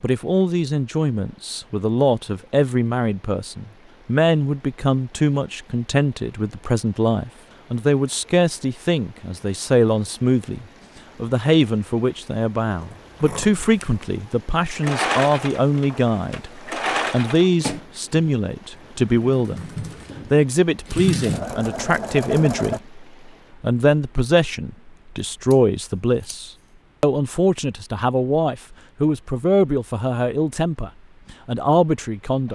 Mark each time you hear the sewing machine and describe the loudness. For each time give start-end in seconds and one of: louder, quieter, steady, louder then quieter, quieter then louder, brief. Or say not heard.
14.7-22.8 quieter then louder.